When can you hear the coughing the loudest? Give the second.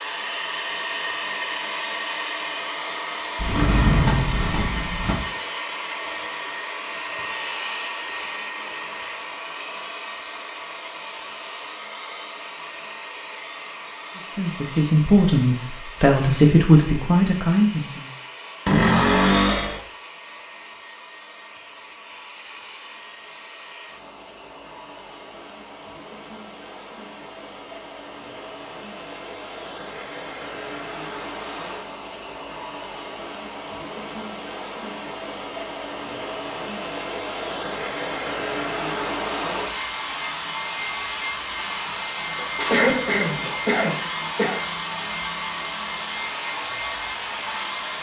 43 s.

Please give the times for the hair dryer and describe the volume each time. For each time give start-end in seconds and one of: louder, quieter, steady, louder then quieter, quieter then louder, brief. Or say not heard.
0.0-47.9 quieter then louder.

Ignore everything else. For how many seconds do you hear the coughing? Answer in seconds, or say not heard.
2 s.